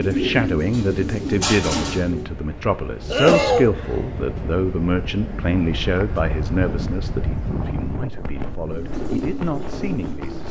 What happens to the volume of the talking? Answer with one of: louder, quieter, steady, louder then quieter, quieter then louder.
quieter.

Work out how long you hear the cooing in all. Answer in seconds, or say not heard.
4 s.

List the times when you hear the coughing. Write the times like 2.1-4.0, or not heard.
3.1-3.7.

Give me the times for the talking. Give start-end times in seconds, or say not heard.
0.0-10.4.